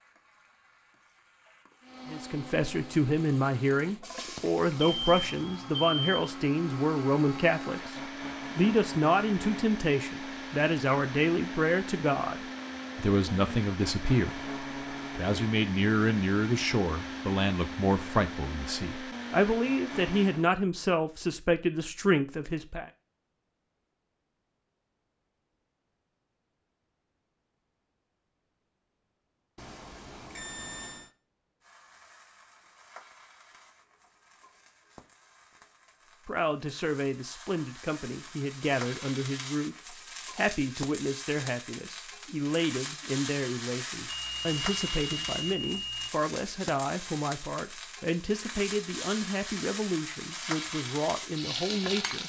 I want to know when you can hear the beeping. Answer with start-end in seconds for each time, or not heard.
4.8-6.3, 29.6-31.1, 44.0-46.1.